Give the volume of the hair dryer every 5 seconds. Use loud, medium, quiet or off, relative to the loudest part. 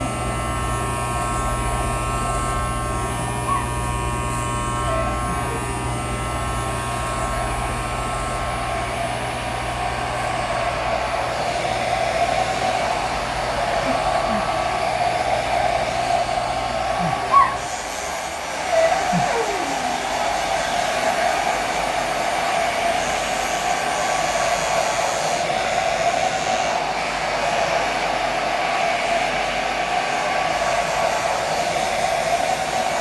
medium, medium, loud, loud, loud, loud, loud.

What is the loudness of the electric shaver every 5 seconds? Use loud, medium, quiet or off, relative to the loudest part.
loud, loud, medium, medium, medium, medium, medium.